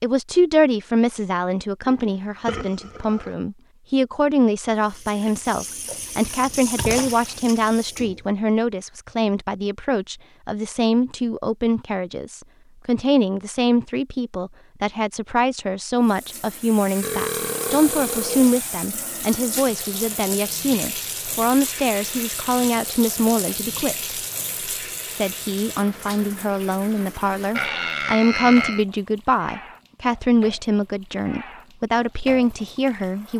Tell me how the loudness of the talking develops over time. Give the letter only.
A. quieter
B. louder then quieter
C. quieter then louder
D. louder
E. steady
E.